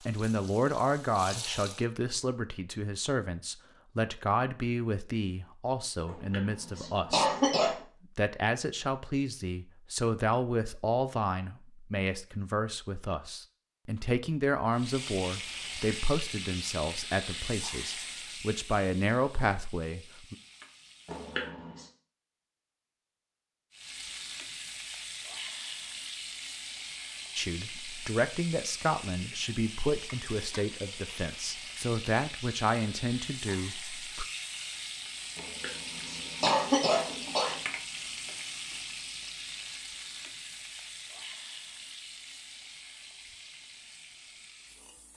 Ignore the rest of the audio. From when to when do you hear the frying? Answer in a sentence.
The frying can be heard from 0.0 to 1.9 s, from 14.7 to 21.5 s and from 23.7 to 45.1 s.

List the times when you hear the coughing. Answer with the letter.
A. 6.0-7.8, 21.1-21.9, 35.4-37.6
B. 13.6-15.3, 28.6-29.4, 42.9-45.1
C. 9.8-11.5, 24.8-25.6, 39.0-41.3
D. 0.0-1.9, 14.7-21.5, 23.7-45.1
A.